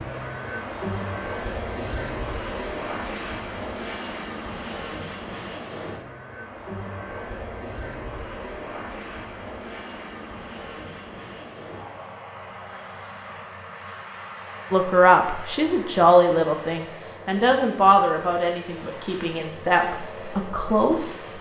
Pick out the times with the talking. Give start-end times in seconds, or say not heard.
14.7-21.3.